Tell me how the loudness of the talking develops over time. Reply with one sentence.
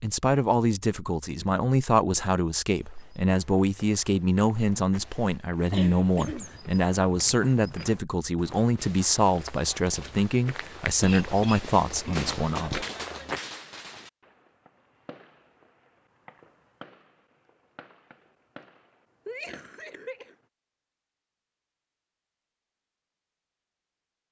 The volume of the talking stays about the same.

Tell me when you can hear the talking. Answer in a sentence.
The talking can be heard from 0.0 to 12.8 s.